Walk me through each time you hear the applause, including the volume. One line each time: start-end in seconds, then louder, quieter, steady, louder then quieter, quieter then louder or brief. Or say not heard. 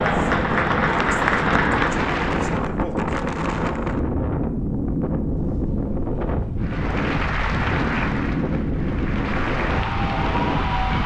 0.0-2.6 brief
6.6-11.0 quieter then louder.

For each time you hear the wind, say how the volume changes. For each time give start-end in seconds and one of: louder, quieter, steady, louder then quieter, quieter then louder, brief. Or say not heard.
0.0-11.0 steady.